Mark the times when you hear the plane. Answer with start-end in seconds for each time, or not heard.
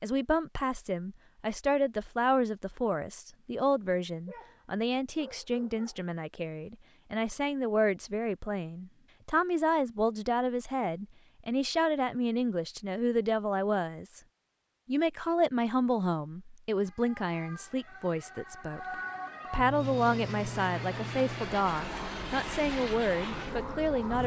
19.6-24.2.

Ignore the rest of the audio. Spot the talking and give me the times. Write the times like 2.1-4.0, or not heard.
0.0-14.2, 14.8-24.2.